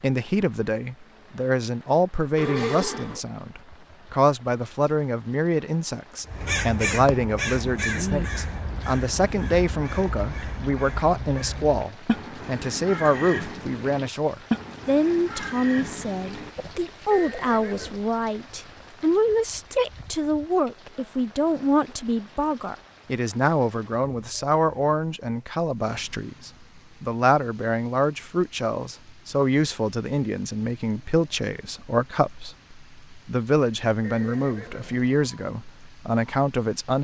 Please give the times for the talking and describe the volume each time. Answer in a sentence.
The talking can be heard from 0.0 to 36.9 s, at a steady volume.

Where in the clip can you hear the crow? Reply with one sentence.
You can hear the crow from 6.2 to 16.9 s.